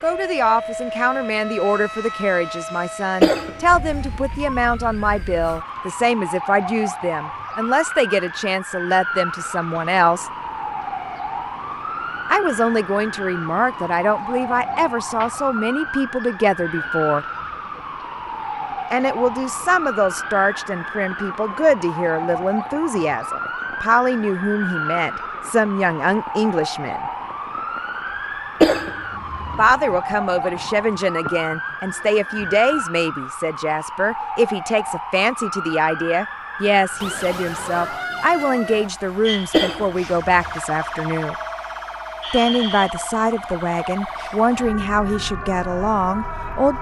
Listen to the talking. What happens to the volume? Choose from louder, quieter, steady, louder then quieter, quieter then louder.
steady.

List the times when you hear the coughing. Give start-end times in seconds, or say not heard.
3.2-4.2, 28.6-29.6, 39.5-40.5.